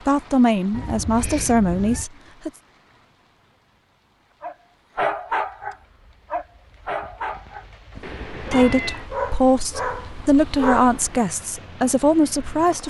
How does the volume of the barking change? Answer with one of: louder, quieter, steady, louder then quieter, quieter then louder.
quieter then louder.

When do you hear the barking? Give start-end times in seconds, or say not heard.
4.4-11.2.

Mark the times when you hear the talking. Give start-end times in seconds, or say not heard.
0.1-2.5, 8.5-12.8.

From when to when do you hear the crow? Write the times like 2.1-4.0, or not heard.
not heard.